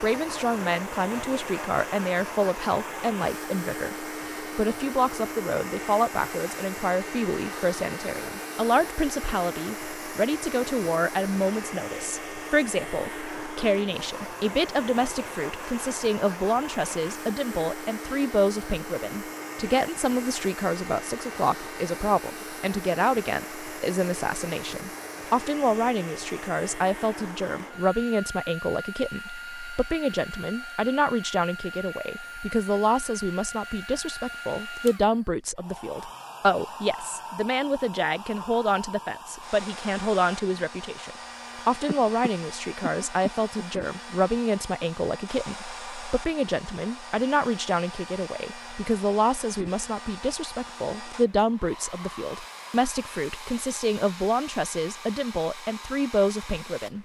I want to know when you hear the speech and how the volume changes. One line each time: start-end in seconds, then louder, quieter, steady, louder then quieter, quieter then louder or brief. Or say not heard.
0.0-57.0 steady.